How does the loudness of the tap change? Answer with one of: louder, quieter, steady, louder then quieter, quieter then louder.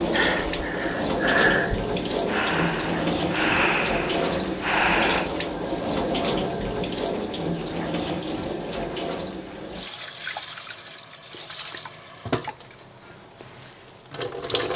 quieter.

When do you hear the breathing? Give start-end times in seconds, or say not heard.
0.1-5.3.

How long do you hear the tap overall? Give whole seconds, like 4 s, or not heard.
15 s.